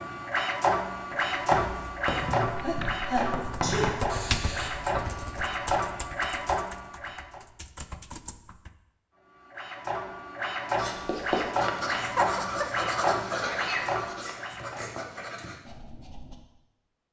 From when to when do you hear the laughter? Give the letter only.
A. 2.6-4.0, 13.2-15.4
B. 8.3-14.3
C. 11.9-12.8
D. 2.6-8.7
C.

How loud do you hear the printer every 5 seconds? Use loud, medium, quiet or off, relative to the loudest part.
loud, loud, loud, off.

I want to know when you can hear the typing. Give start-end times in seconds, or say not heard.
2.6-8.7.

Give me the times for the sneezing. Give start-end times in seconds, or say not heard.
2.6-4.0, 13.2-15.4.